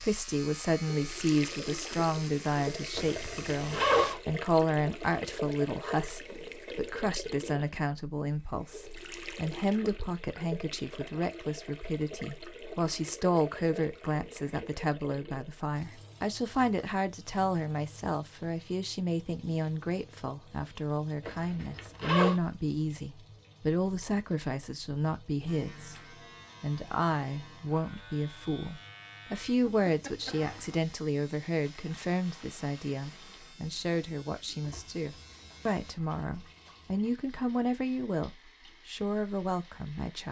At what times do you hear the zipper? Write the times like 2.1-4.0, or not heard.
3.0-4.2, 21.2-22.4, 29.8-30.8.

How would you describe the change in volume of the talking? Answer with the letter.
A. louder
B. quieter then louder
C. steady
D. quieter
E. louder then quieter
C.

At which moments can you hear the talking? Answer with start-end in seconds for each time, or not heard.
0.0-40.2.